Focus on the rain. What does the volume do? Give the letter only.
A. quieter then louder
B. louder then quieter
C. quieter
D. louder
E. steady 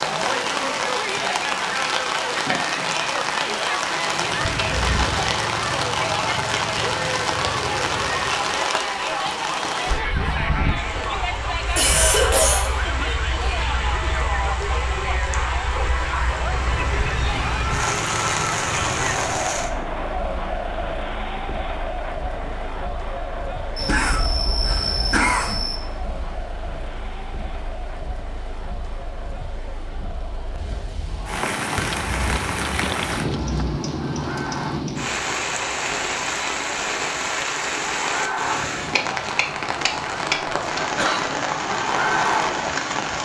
A.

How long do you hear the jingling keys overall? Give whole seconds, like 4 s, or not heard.
4 s.